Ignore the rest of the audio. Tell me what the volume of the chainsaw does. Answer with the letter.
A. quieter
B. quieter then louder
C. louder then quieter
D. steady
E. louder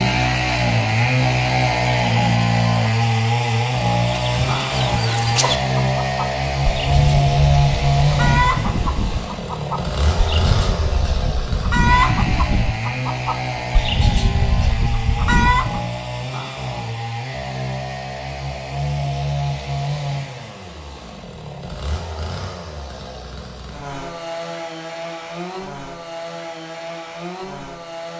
A.